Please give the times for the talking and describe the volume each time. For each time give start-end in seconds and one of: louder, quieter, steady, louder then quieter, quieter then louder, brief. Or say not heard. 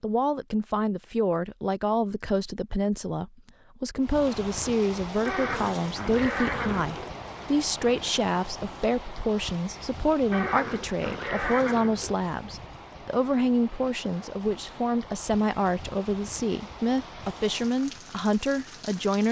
0.0-19.2 steady.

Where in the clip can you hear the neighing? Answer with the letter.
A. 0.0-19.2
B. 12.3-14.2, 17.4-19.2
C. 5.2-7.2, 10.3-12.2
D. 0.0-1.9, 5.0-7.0
C.